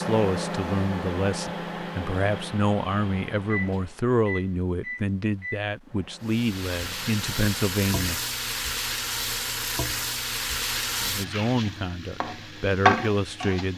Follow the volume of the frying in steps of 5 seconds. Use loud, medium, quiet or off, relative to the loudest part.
off, loud, loud.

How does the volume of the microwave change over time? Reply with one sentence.
The volume of the microwave goes down.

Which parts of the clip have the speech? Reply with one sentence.
The speech can be heard from 0.0 to 8.2 s and from 11.0 to 13.7 s.